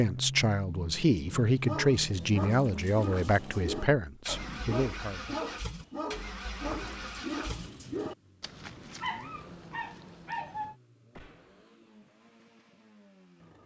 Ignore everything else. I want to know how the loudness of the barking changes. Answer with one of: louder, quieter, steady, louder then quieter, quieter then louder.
steady.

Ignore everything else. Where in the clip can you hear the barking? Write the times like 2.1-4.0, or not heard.
1.4-10.8.